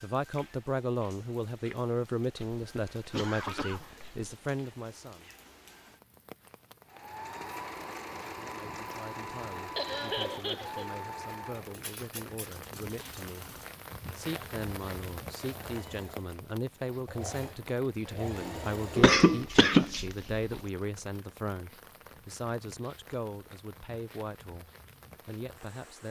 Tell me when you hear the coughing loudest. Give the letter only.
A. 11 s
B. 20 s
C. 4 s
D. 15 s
B.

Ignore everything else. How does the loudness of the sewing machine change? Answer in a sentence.
The volume of the sewing machine goes down, then up.